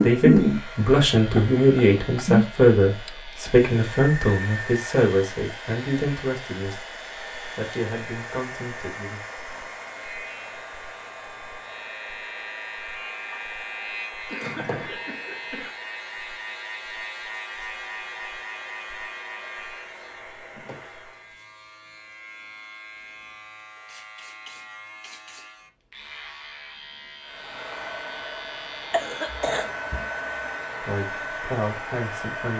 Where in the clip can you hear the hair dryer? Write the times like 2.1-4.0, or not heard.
0.0-21.4, 27.2-32.5.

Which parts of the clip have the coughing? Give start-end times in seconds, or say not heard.
1.1-2.4, 14.2-15.7, 28.9-29.8.